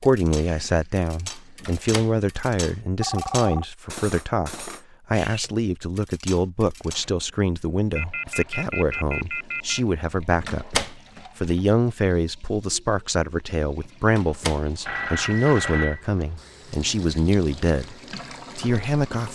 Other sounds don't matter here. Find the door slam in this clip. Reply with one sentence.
The door slam can be heard from 1.6 to 2.4 s, from 10.4 to 11.2 s and from 14.1 to 14.9 s.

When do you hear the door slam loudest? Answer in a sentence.
The loudest moment of the door slam is at 11 seconds.